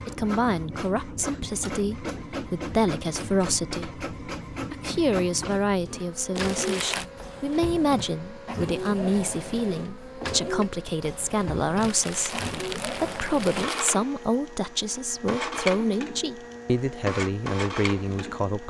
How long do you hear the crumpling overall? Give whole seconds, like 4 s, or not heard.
3 s.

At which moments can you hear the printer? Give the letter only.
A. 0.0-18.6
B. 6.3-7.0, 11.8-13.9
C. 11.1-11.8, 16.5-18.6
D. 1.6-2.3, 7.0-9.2
A.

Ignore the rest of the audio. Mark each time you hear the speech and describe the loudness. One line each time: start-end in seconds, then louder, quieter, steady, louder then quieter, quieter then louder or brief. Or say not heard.
0.1-18.6 steady.